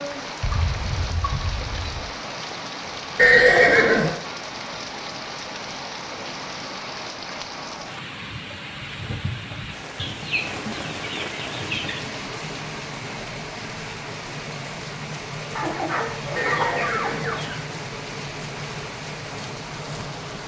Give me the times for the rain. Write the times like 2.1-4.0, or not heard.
0.0-20.4.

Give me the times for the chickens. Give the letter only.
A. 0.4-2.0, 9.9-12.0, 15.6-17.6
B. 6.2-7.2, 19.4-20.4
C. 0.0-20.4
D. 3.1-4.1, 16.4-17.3
A.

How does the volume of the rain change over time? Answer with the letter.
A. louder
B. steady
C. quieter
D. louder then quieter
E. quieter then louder
B.